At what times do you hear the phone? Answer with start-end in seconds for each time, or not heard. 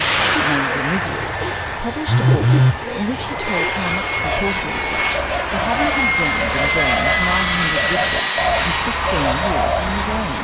2.0-2.8, 6.8-7.8.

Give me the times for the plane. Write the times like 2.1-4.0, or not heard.
0.0-10.3.